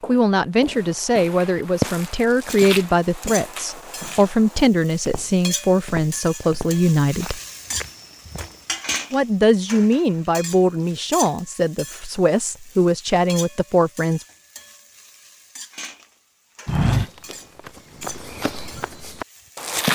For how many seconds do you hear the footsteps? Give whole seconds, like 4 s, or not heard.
13 s.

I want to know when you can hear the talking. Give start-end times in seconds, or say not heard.
0.1-7.4, 9.1-14.2.